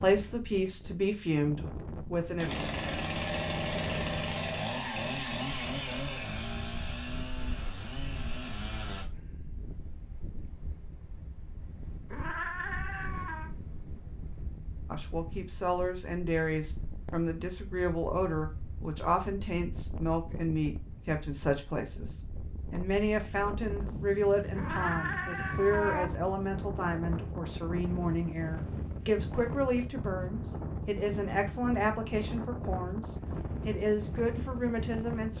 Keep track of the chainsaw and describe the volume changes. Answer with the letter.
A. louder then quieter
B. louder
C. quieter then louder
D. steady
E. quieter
E.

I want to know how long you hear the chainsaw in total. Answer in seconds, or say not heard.
7 s.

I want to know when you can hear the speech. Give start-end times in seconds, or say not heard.
0.0-2.5, 14.9-35.3.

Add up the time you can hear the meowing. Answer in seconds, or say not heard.
3 s.